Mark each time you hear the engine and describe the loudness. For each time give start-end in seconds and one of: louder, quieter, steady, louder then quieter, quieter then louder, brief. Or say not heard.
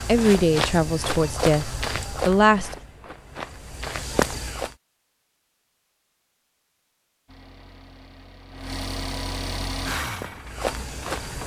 7.2-11.4 louder then quieter.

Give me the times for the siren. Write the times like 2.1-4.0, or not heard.
not heard.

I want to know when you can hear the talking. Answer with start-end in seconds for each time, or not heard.
0.1-2.7.